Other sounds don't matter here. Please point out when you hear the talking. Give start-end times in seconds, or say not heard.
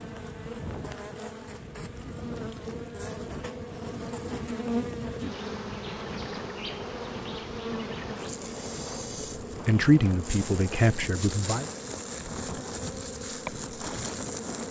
9.7-11.7.